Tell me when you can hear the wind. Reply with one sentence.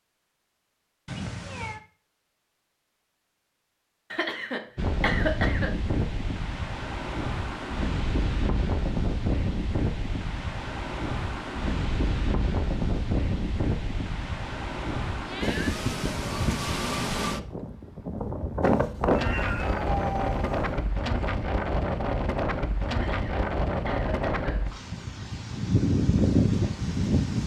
The wind can be heard from 4.8 to 27.4 s.